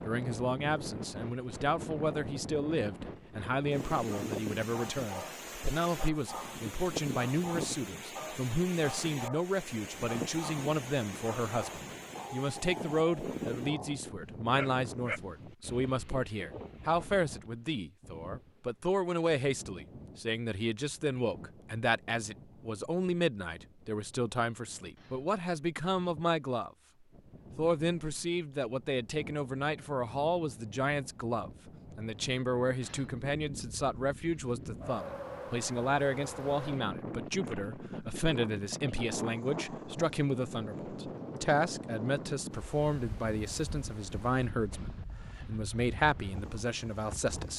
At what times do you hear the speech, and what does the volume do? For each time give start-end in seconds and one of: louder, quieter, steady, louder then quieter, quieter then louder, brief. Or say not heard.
0.0-26.7 steady
27.6-47.5 steady.